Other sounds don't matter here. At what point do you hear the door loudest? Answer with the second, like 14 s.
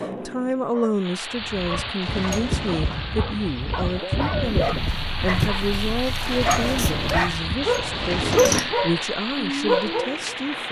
8 s.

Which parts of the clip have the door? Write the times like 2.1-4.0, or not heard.
2.0-3.2, 6.2-8.7.